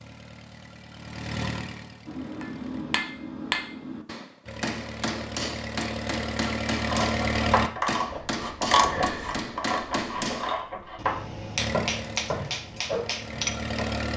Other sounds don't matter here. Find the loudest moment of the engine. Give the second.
7 s.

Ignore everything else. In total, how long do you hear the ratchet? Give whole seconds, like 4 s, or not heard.
7 s.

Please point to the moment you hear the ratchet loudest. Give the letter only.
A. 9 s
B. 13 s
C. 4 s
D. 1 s
A.